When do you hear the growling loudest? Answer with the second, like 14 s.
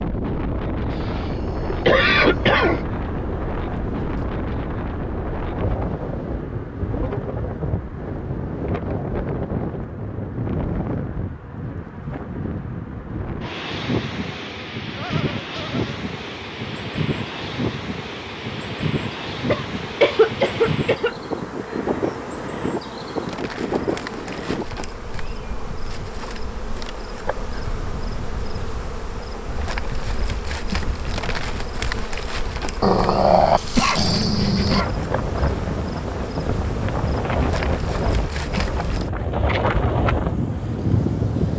33 s.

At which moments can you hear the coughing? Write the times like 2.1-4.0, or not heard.
0.9-2.9, 19.5-21.1, 33.8-35.0.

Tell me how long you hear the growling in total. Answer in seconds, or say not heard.
2 s.